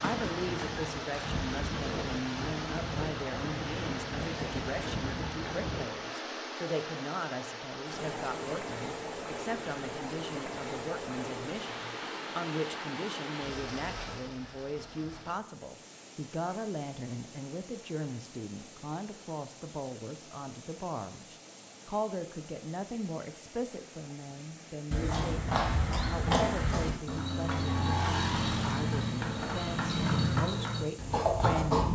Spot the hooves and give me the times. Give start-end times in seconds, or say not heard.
0.0-5.8, 24.9-31.9.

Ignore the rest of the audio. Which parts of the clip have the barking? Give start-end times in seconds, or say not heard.
not heard.